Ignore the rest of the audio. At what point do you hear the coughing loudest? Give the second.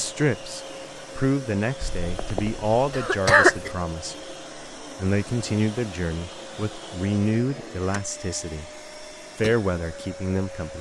3 s.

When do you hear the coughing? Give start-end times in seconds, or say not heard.
1.8-3.7.